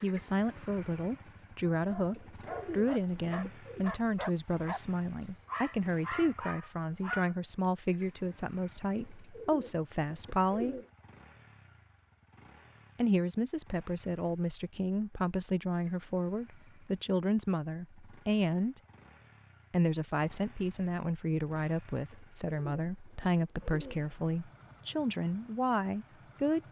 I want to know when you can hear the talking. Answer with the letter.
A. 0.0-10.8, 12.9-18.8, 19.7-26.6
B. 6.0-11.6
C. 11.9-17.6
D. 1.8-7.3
A.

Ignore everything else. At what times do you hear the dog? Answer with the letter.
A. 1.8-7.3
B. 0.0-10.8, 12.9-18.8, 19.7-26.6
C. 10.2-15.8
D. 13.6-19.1
A.